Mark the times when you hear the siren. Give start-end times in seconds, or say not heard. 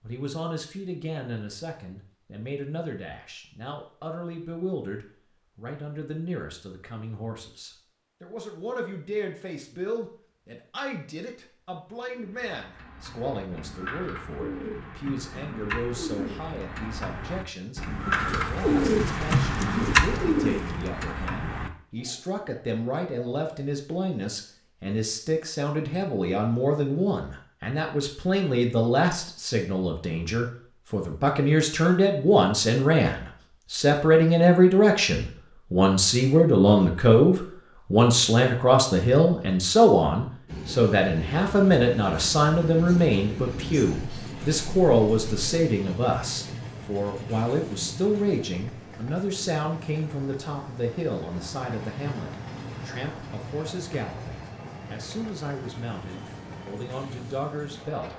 not heard.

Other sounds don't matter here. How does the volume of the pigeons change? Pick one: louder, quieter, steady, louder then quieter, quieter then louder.
louder then quieter.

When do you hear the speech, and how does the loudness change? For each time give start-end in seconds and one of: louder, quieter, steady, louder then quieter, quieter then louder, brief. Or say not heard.
0.0-58.1 louder then quieter.